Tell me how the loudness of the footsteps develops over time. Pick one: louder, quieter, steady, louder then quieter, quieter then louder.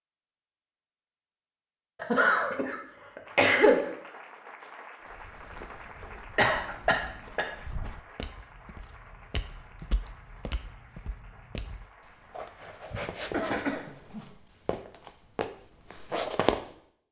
louder.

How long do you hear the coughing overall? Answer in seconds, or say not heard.
4 s.